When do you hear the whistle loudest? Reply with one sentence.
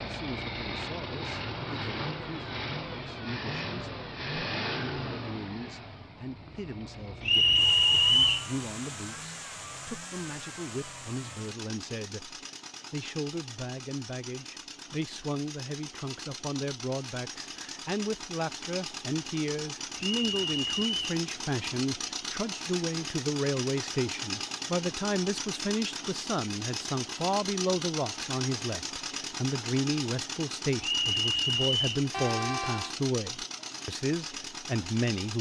The volume of the whistle peaks at 8 seconds.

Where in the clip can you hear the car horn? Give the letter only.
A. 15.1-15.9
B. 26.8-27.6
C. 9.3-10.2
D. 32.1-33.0
D.